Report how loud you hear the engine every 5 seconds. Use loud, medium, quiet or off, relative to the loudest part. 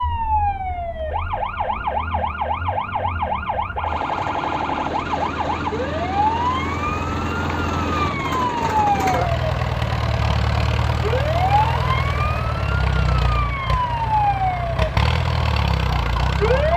quiet, loud, loud, loud.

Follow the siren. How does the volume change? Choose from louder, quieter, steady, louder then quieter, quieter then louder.
steady.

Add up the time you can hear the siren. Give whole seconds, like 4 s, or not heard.
17 s.